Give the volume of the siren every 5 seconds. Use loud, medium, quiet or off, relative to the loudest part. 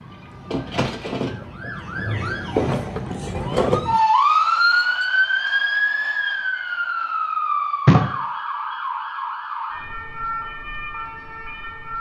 loud, loud, medium.